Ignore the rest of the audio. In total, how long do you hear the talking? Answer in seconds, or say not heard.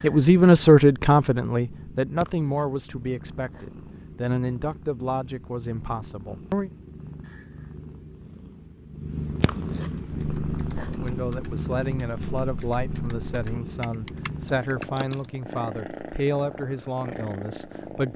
14 s.